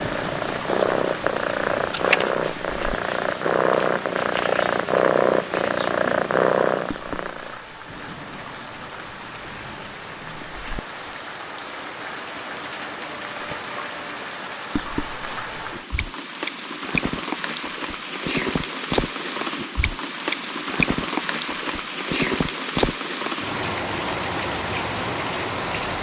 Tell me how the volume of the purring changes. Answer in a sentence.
The volume of the purring stays about the same.